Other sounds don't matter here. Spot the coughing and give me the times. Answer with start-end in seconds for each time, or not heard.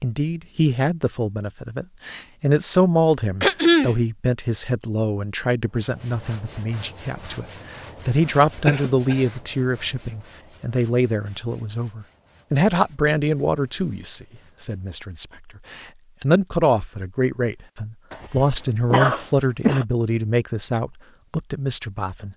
3.4-4.0, 8.7-9.2, 18.1-19.9.